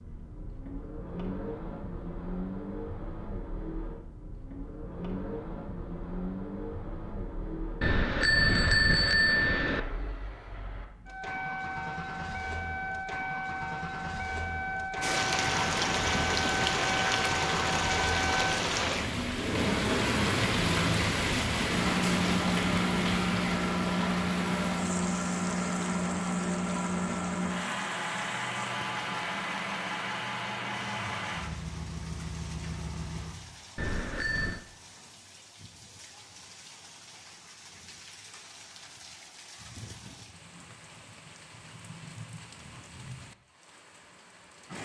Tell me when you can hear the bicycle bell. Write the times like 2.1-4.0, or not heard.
7.8-9.8, 33.8-34.6.